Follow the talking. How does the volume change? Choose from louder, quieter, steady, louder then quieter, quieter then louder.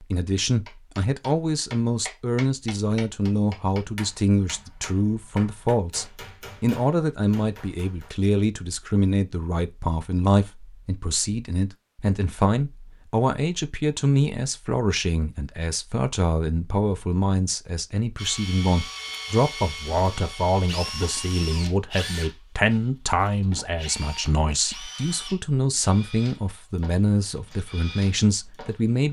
steady.